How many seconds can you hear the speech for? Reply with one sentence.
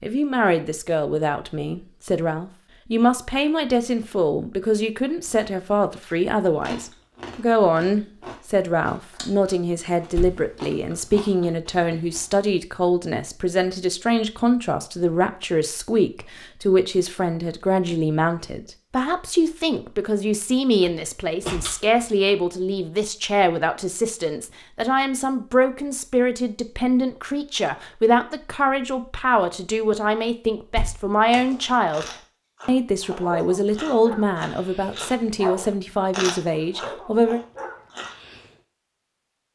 You can hear the speech for 37 seconds altogether.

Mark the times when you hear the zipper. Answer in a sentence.
The zipper can't be heard in this clip.